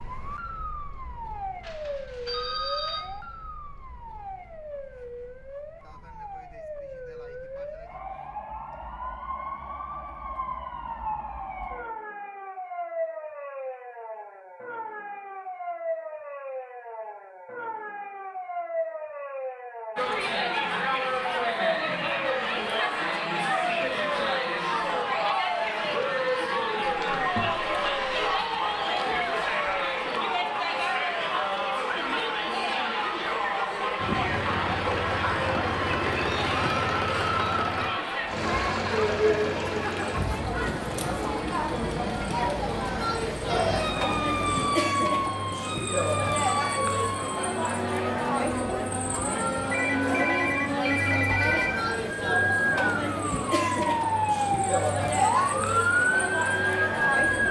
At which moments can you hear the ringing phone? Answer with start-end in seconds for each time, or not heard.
1.6-3.0, 26.8-28.4, 49.7-51.8.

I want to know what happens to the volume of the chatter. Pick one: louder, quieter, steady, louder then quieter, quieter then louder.
steady.